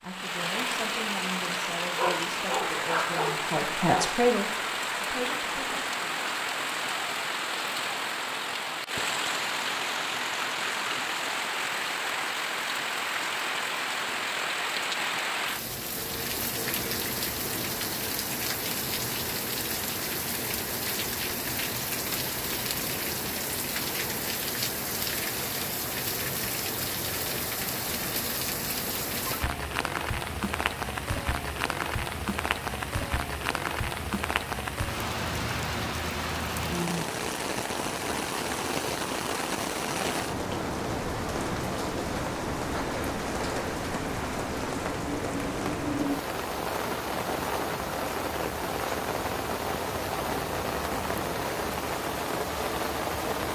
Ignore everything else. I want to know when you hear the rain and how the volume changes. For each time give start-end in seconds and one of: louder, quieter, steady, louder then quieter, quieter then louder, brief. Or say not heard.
0.0-53.5 steady.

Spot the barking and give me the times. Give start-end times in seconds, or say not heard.
1.9-4.2.